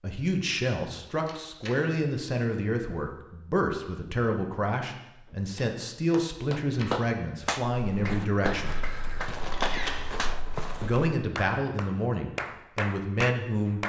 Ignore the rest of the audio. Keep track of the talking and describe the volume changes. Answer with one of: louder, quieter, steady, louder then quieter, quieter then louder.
steady.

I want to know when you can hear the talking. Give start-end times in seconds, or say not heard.
0.0-8.8, 10.8-13.8.